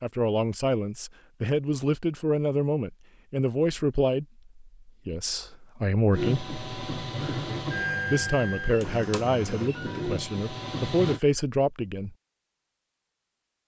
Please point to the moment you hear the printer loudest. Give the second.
8 s.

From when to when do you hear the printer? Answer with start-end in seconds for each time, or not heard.
6.1-11.2.